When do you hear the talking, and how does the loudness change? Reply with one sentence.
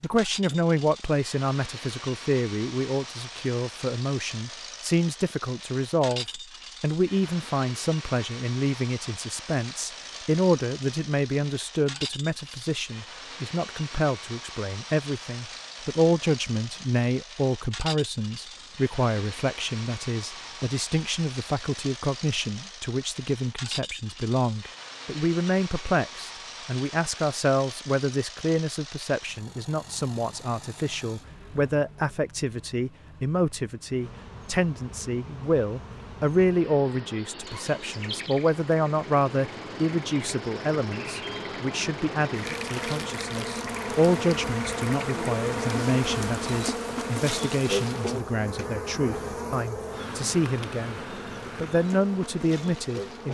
You can hear the talking from 0.0 to 53.2 s, at a steady volume.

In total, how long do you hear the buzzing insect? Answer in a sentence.
You can hear the buzzing insect for 19 seconds altogether.